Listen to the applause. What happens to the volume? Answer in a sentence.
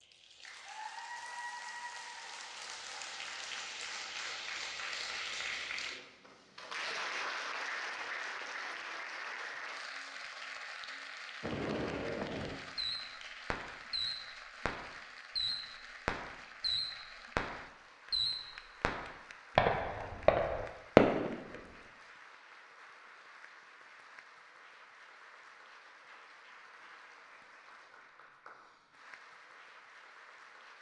The volume of the applause goes down.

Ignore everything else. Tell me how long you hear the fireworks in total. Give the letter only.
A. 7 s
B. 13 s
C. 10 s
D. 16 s
C.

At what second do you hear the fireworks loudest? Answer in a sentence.
The loudest moment of the fireworks is at 21 seconds.